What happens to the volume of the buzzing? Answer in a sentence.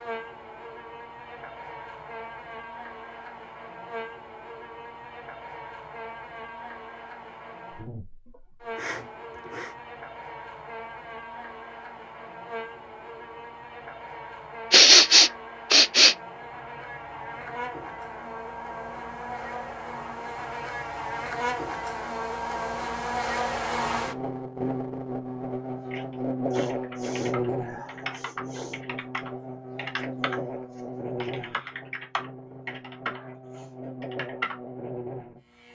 The volume of the buzzing goes up, then down.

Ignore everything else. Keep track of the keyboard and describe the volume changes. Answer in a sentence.
The volume of the keyboard goes up.